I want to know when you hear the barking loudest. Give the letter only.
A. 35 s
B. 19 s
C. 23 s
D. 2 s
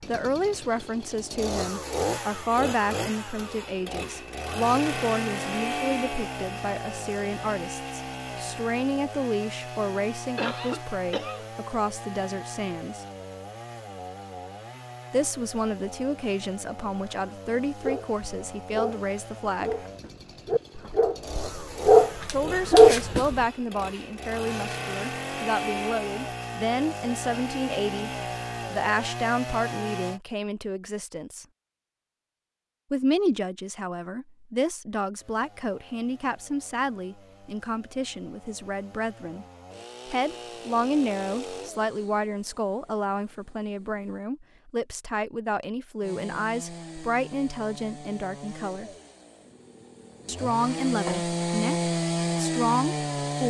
C.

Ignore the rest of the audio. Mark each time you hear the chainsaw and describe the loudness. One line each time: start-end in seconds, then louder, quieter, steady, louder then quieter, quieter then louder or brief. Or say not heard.
0.0-30.2 quieter then louder
35.1-44.2 louder then quieter
46.0-53.4 quieter then louder.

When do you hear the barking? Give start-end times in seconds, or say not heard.
17.8-23.4.